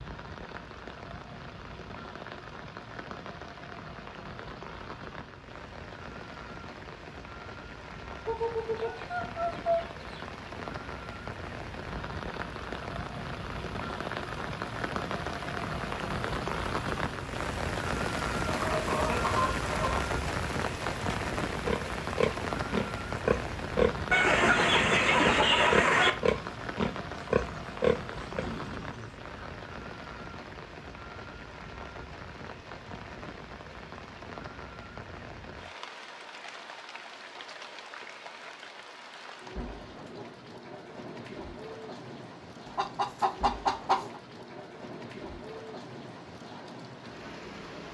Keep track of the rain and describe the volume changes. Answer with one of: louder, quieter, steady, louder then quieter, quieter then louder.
louder then quieter.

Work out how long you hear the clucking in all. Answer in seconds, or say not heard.
7 s.